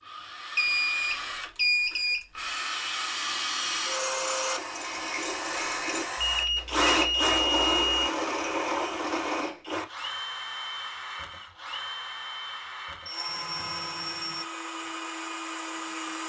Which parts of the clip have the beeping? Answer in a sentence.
You can hear the beeping from 0.6 to 2.2 s, from 6.2 to 8.1 s and from 13.1 to 14.4 s.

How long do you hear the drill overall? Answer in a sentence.
The drill can be heard for 16 seconds in total.